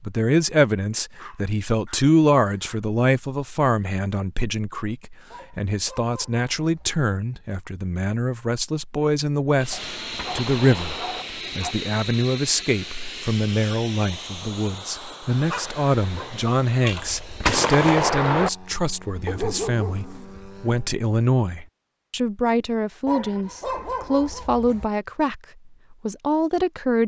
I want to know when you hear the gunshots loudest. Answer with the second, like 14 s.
18 s.